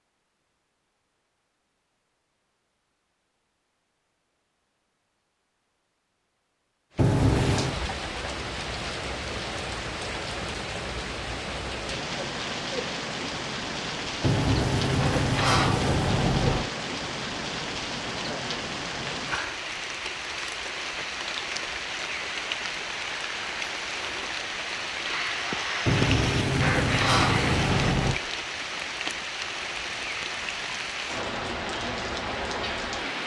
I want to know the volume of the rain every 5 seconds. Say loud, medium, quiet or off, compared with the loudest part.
off, loud, loud, loud, loud, loud, loud.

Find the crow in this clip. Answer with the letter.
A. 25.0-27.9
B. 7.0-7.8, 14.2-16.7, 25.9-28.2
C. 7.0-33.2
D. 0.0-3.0
A.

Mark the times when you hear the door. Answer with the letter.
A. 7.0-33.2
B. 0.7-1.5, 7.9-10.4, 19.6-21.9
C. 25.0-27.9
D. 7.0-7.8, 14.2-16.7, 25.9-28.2
D.